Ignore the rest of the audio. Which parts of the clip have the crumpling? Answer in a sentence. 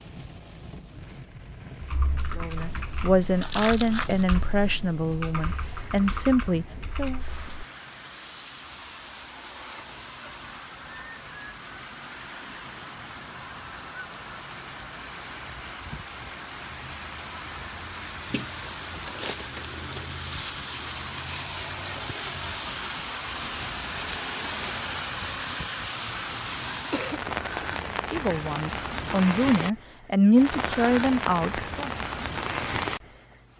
The crumpling can be heard from 3.4 to 4.2 s, from 18.3 to 20.1 s and from 23.4 to 24.9 s.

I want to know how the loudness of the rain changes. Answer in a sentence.
The loudness of the rain goes up.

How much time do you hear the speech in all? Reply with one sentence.
You can hear the speech for 9 seconds altogether.